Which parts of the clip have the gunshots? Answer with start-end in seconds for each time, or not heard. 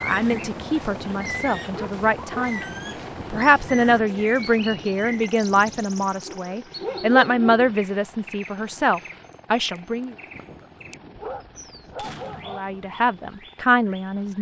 11.2-12.6.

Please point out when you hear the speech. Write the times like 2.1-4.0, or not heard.
0.0-10.2, 12.4-14.3.